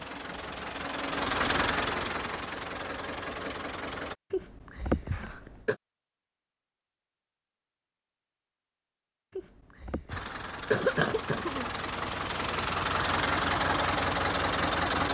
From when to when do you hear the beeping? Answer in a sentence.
You can't hear the beeping here.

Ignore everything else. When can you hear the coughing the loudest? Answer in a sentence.
The loudest moment of the coughing is at 11 seconds.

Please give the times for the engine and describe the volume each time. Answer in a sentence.
The engine can be heard from 0.0 to 4.2 s, getting louder then quieter; and from 10.1 to 15.0 s, getting louder.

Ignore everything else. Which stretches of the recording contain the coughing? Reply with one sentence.
The coughing can be heard from 4.3 to 5.8 s and from 9.3 to 11.7 s.